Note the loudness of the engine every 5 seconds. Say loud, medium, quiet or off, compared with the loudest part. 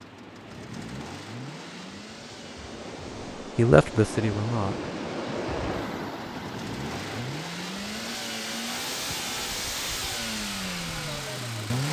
quiet, loud, loud.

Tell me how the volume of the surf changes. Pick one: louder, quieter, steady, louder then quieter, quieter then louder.
louder then quieter.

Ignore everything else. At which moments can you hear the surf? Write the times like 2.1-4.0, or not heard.
0.0-11.8.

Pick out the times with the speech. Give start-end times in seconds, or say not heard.
3.4-4.8.